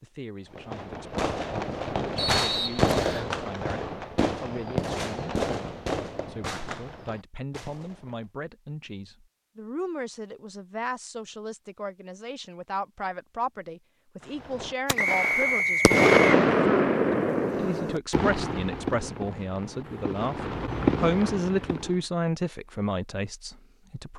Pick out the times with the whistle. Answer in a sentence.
You can hear the whistle from 2.1 to 3.3 s and from 14.9 to 16.4 s.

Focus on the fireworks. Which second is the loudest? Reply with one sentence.
The loudest moment of the fireworks is at 16 seconds.